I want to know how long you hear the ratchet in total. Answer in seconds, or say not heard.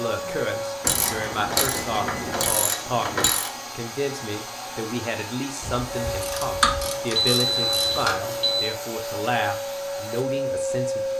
5 s.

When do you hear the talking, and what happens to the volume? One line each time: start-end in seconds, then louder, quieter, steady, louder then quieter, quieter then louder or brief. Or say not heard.
0.0-11.1 steady.